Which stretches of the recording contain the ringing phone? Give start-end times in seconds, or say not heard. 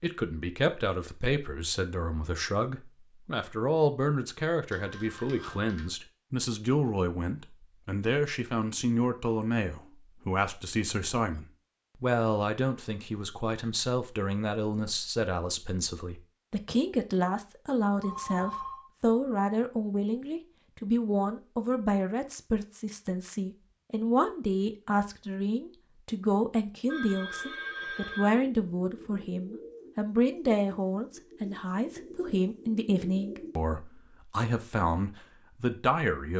4.7-5.9, 18.0-18.9, 26.9-28.4.